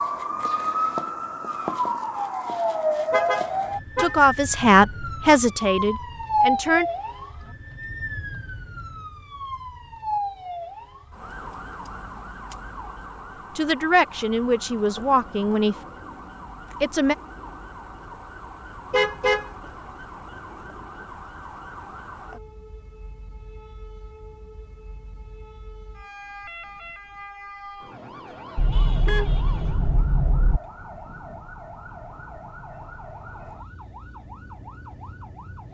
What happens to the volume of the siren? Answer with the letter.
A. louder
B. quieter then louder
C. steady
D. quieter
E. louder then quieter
D.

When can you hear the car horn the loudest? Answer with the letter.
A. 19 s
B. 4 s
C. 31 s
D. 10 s
A.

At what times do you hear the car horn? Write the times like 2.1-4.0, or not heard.
3.1-4.2, 18.9-19.5, 28.6-30.6.